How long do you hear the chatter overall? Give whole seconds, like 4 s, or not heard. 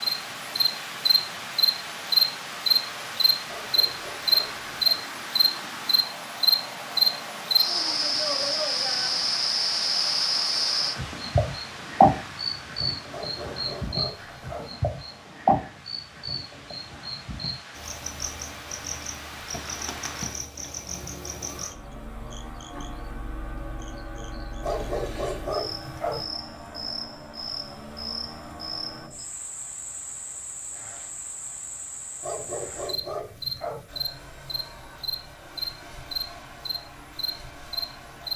not heard.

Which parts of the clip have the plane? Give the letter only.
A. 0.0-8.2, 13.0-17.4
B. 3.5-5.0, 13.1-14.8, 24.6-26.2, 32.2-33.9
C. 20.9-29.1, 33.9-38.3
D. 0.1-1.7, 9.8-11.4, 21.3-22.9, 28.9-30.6
C.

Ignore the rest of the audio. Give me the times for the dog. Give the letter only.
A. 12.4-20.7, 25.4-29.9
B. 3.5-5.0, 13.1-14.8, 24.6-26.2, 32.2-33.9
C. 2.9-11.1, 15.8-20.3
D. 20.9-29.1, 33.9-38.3
B.